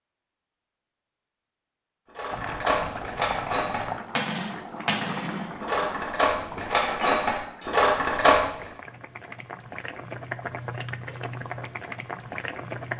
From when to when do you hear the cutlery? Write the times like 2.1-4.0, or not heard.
2.1-8.4.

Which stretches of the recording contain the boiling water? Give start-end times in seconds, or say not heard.
2.3-12.9.